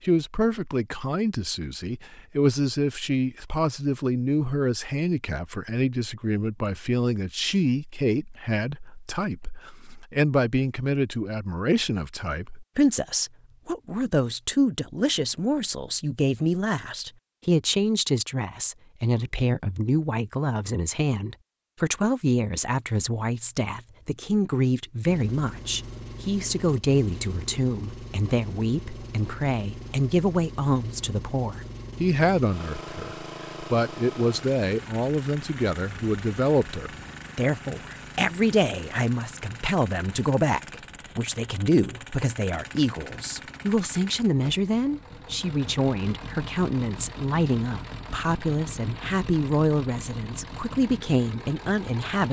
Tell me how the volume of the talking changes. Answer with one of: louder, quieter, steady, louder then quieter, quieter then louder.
steady.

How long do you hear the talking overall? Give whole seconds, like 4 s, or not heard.
52 s.